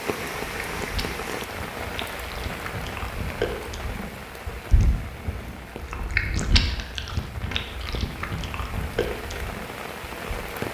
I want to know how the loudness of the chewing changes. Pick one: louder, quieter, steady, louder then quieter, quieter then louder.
louder then quieter.